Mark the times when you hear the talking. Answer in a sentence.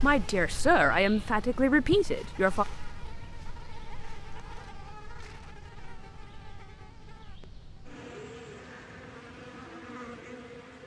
The talking can be heard from 0.0 to 2.6 s.